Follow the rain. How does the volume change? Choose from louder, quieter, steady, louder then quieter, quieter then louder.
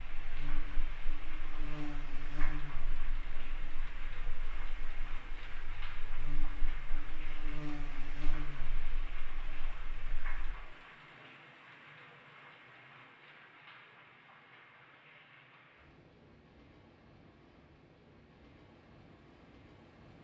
quieter.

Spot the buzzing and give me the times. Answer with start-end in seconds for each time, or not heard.
0.0-10.6.